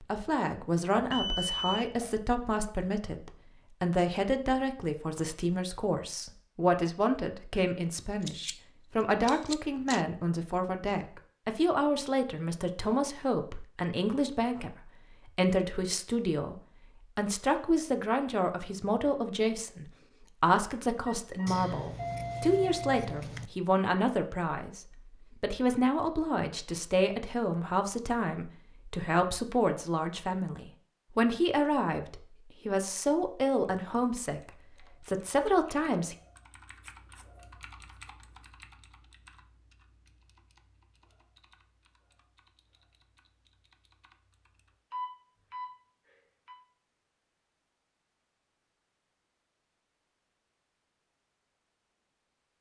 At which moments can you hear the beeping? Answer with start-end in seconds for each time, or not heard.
0.9-2.0, 21.1-23.1, 44.9-45.7.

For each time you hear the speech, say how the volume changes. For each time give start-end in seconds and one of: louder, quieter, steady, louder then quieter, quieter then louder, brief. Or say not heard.
0.0-36.1 steady.